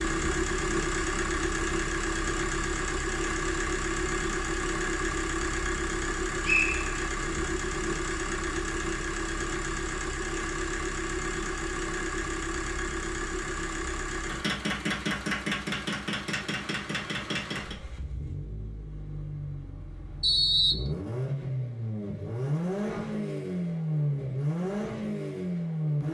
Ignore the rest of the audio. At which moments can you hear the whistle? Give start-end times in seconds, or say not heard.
6.5-7.1, 20.2-20.9.